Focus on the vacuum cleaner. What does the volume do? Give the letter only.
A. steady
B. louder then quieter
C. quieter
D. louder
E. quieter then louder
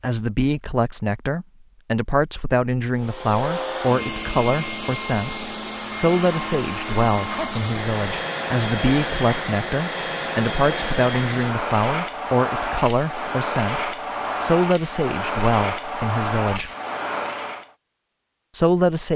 A.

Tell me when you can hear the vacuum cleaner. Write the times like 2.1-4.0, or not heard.
3.0-17.7.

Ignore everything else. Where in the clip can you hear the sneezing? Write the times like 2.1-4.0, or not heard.
7.2-7.7.